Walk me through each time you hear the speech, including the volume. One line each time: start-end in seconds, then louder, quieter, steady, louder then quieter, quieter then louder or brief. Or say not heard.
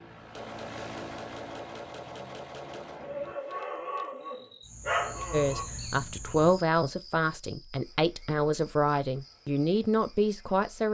5.3-10.8 steady.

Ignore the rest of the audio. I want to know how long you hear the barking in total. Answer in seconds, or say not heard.
3 s.